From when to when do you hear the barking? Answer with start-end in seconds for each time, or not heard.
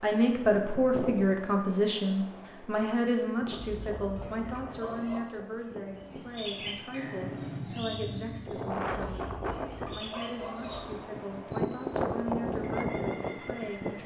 3.5-5.3, 9.1-10.8.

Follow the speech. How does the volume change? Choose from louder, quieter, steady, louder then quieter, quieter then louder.
quieter.